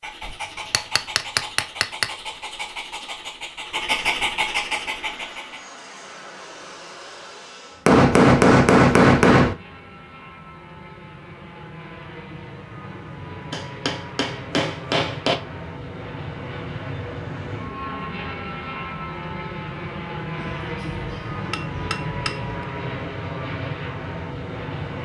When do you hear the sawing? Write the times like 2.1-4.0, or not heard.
not heard.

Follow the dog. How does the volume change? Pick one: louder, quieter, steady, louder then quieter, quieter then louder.
louder.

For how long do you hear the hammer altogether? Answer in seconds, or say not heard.
8 s.